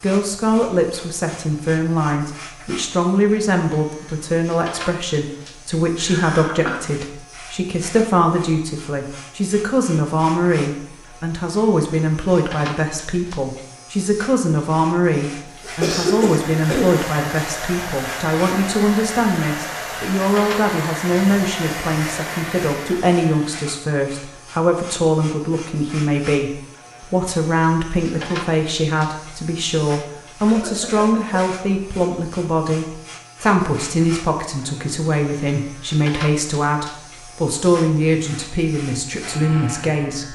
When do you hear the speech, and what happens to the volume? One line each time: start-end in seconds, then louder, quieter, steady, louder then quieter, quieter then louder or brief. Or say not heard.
0.0-40.2 steady.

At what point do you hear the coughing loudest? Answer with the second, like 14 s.
16 s.